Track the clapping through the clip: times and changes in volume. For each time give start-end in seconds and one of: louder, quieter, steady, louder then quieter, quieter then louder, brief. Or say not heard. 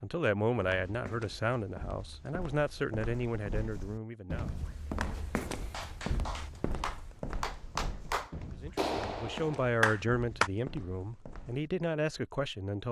5.7-10.5 louder.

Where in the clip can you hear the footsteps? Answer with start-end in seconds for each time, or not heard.
0.6-11.7.